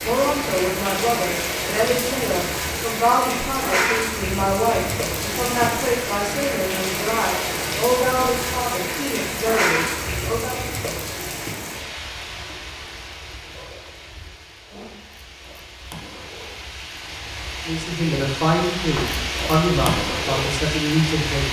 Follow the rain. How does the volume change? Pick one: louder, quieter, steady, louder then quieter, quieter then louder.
quieter then louder.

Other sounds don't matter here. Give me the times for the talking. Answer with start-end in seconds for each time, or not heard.
0.0-10.7, 17.6-21.4.